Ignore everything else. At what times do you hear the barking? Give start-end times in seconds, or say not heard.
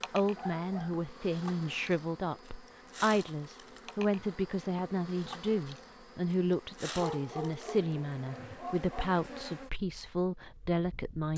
0.3-1.1, 7.0-9.1.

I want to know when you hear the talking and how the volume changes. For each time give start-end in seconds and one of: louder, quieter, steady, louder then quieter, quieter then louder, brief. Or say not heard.
0.1-11.3 steady.